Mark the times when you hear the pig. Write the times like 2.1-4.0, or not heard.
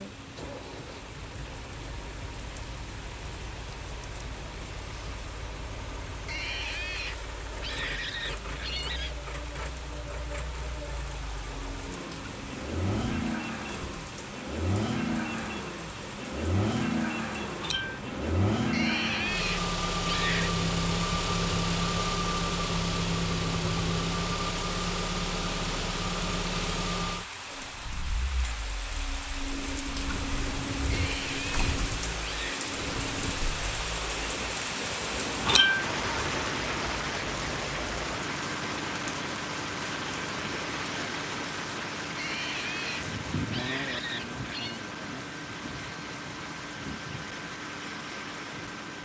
6.2-9.2, 18.7-20.6, 30.9-32.6, 42.1-44.9.